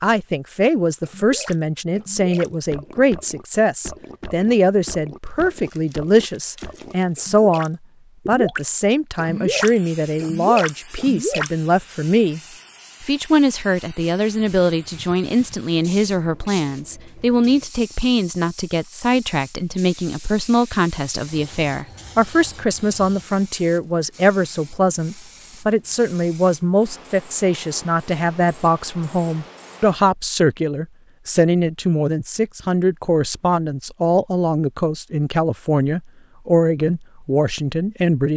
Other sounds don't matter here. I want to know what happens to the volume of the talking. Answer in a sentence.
The loudness of the talking stays about the same.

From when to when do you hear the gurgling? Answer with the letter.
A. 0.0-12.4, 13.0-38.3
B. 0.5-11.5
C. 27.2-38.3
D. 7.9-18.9
B.